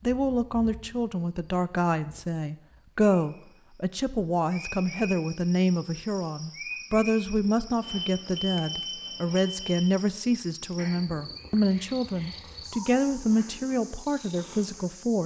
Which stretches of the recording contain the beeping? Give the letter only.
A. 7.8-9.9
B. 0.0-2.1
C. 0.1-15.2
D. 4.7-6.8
A.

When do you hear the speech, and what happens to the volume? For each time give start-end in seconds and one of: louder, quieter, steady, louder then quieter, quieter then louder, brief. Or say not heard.
0.1-15.2 steady.